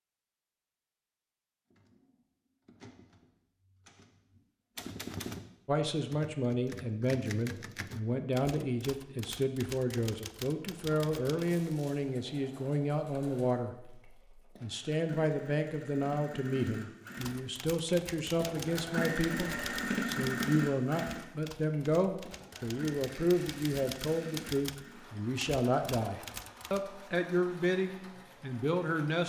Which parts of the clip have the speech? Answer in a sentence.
The speech can be heard from 5.7 to 29.2 s.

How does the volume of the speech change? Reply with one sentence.
The loudness of the speech stays about the same.